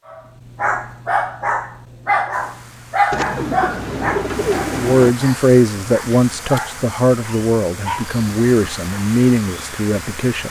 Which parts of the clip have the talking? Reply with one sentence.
The talking can be heard from 4.7 to 10.4 s.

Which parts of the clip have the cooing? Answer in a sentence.
You can hear the cooing from 3.1 to 5.2 s.